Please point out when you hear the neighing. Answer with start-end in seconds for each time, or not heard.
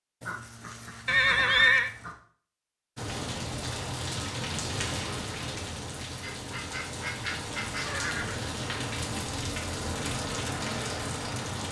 1.1-1.9, 7.8-8.6.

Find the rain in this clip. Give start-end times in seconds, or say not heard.
3.0-11.6.